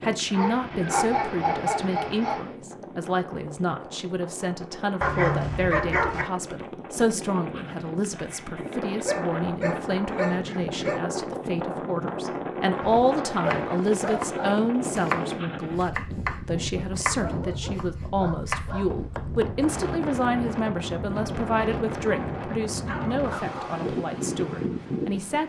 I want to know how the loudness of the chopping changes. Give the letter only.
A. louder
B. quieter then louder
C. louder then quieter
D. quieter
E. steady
C.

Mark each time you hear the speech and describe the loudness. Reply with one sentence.
You can hear the speech from 0.0 to 25.4 s, at a steady volume.